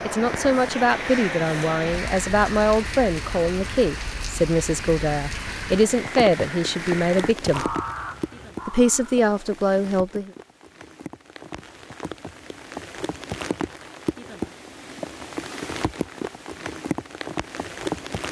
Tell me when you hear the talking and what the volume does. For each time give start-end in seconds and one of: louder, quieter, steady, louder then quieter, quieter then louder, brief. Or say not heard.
0.0-7.8 steady
8.7-10.3 brief.